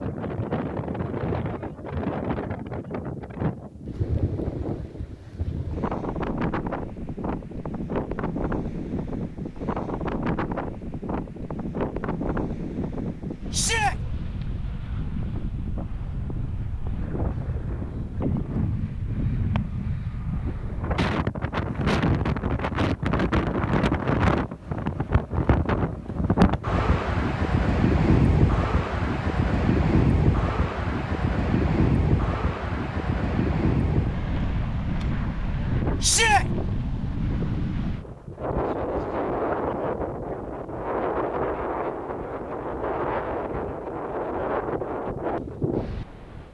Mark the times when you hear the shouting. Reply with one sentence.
You can hear the shouting from 13.5 to 13.9 s and from 36.0 to 36.5 s.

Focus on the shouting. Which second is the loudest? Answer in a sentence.
The volume of the shouting peaks at 36 seconds.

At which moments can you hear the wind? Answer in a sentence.
You can hear the wind from 0.0 to 46.4 s.